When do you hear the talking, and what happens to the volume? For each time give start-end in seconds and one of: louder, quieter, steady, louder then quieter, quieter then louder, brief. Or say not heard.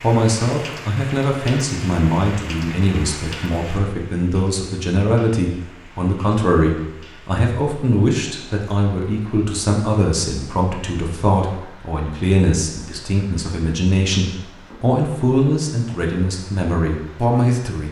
0.0-17.8 steady.